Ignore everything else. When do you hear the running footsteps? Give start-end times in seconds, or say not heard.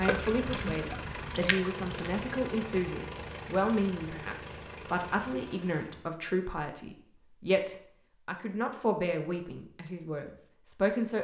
not heard.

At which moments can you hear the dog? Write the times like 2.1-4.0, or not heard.
not heard.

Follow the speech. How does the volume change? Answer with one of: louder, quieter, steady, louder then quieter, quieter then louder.
steady.